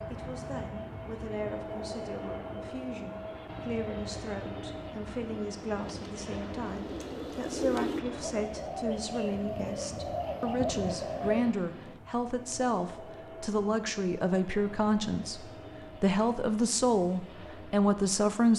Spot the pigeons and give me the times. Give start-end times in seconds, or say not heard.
5.7-11.6.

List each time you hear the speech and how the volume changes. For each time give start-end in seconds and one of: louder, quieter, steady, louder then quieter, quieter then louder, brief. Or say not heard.
0.0-18.5 louder.